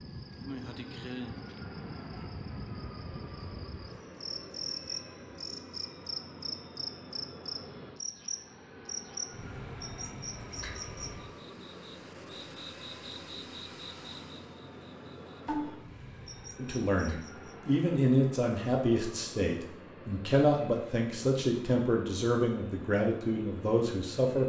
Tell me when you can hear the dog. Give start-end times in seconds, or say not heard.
not heard.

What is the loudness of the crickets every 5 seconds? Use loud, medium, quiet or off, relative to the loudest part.
loud, loud, medium, loud, off.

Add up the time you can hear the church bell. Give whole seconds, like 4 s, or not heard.
not heard.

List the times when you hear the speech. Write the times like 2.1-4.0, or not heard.
16.6-24.4.